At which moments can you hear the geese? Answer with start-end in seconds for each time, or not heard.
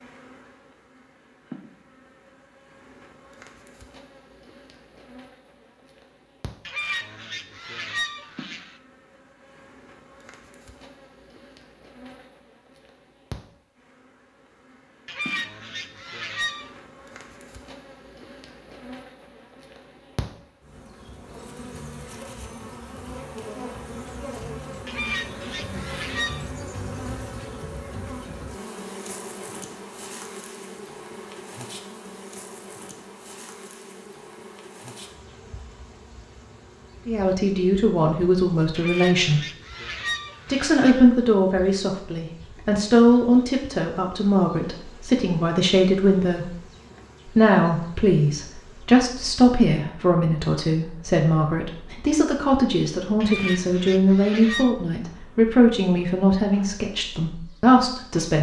6.7-8.8, 15.1-16.7, 24.9-26.4, 38.8-41.0, 53.2-54.8.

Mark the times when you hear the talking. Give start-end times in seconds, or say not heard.
37.0-39.4, 40.5-46.6, 47.2-58.3.